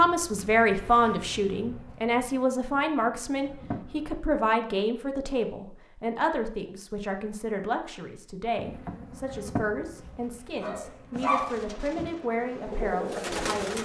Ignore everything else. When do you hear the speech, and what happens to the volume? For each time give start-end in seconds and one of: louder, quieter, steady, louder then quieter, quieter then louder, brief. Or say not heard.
0.0-13.8 quieter.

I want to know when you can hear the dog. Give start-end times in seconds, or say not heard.
10.6-12.1.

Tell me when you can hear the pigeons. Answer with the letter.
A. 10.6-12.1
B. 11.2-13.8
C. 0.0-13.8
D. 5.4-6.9
B.